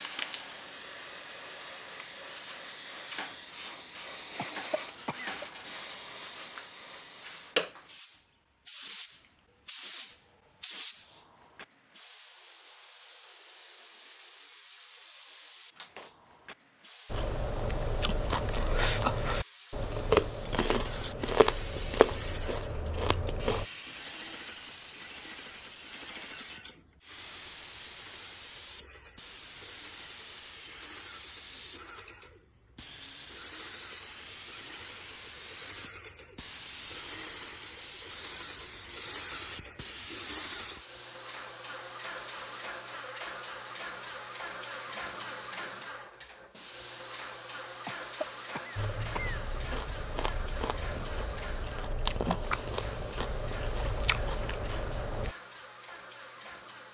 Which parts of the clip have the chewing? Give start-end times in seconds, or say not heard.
17.1-23.6, 48.8-55.4.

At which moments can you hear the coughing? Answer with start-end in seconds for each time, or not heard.
4.3-5.5, 47.9-49.4.